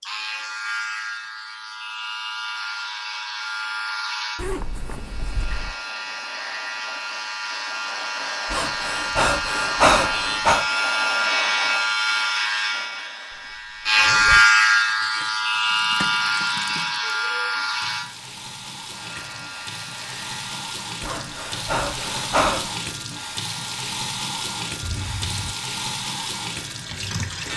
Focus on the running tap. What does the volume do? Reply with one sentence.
The volume of the running tap goes up.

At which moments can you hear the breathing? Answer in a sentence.
The breathing can be heard from 8.5 to 10.7 s and from 21.0 to 22.7 s.